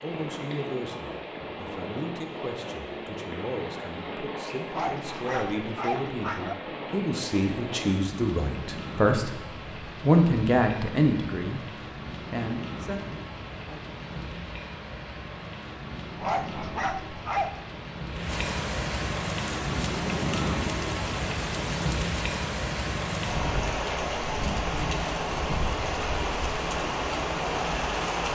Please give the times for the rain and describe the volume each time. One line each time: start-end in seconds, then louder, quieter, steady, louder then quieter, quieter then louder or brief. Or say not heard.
0.0-28.2 louder.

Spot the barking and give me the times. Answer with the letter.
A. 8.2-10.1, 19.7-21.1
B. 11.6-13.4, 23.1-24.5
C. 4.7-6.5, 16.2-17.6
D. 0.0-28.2
C.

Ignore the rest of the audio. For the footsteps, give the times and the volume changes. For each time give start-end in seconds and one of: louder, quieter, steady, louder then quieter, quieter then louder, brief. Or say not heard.
not heard.